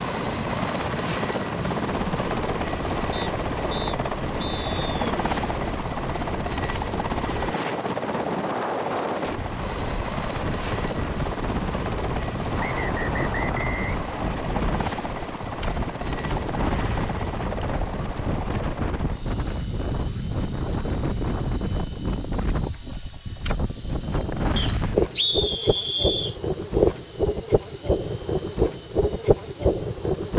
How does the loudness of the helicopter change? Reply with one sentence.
The volume of the helicopter goes down.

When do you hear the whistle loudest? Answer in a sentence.
The loudest moment of the whistle is at 25 seconds.